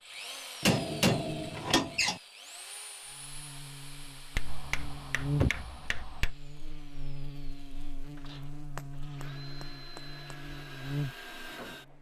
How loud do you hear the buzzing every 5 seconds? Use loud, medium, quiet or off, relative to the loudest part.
medium, loud, loud.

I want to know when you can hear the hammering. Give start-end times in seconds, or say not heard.
0.6-2.2, 4.3-6.3, 8.8-10.3.